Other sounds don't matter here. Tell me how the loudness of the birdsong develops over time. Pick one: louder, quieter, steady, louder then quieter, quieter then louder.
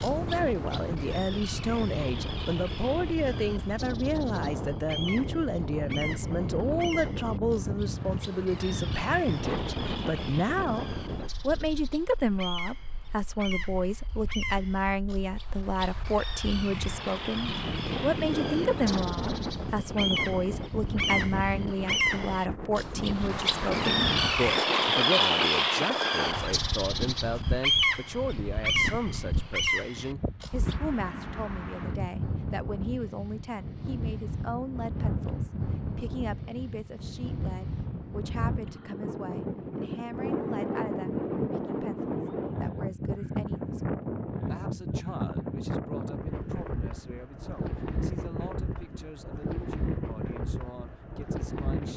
louder.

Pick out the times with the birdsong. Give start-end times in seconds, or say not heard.
0.0-30.8.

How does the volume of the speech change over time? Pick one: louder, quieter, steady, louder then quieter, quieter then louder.
quieter.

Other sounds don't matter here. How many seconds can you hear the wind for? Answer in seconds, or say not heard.
52 s.